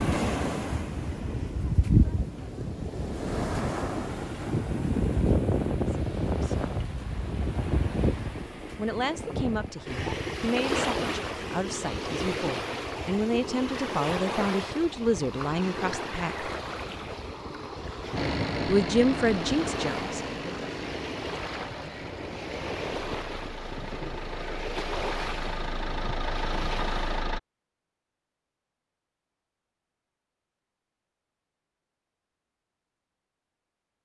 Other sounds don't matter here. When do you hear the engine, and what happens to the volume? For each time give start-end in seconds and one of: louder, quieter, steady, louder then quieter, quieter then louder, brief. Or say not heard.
18.1-27.4 quieter then louder.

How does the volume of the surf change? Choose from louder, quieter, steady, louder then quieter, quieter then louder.
quieter.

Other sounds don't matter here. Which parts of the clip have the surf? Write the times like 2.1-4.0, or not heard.
0.0-27.2.